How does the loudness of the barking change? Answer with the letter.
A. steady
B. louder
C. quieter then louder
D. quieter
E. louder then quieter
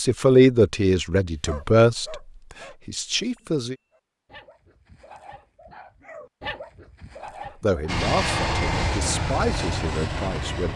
C.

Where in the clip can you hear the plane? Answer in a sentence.
You can hear the plane from 7.8 to 10.7 s.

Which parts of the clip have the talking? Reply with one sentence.
You can hear the talking from 0.0 to 3.8 s and from 7.6 to 10.7 s.